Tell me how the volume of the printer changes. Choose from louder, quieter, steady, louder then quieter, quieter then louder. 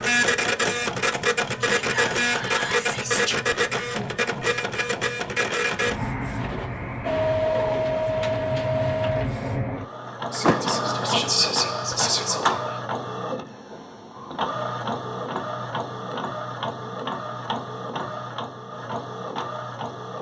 quieter.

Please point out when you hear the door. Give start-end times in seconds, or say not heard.
10.4-11.2.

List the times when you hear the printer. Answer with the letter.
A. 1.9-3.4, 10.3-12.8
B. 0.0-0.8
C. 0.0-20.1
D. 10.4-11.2
C.